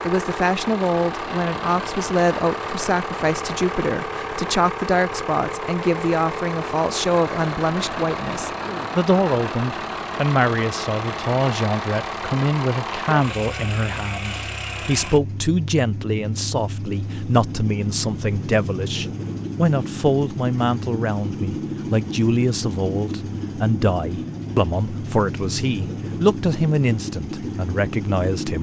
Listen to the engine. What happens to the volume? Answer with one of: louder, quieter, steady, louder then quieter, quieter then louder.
steady.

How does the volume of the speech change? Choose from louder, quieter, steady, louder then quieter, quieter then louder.
steady.